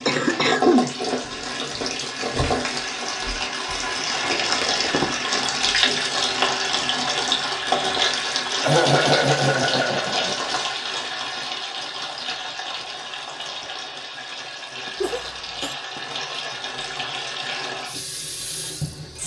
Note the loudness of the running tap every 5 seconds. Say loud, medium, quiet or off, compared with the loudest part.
loud, loud, medium, medium.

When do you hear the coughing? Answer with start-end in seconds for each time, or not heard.
0.1-0.9, 8.6-10.3, 15.0-15.8.